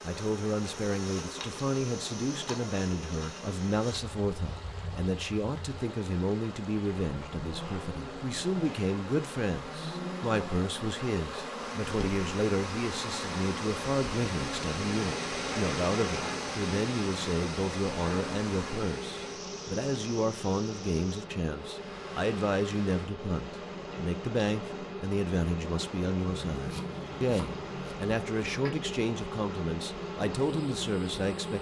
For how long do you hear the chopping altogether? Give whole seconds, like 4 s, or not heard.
2 s.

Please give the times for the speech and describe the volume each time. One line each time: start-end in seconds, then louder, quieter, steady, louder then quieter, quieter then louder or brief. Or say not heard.
0.0-31.5 steady.